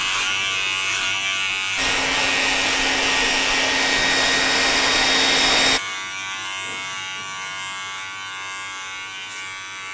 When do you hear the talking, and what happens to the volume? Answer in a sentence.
The talking can't be heard in this clip.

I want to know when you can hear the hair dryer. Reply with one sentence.
You can hear the hair dryer from 1.8 to 5.8 s.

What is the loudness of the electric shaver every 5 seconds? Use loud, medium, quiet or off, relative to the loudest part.
loud, medium.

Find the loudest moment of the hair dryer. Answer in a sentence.
The loudest moment of the hair dryer is at 5 seconds.